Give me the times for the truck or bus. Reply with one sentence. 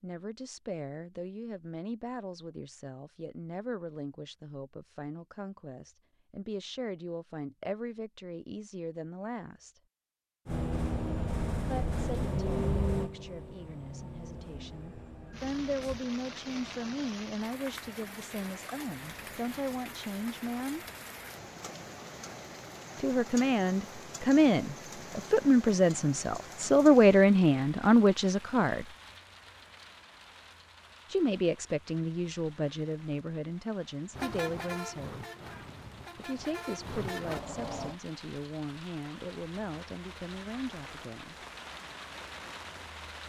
The truck or bus can be heard from 10.4 to 16.0 s and from 34.1 to 38.0 s.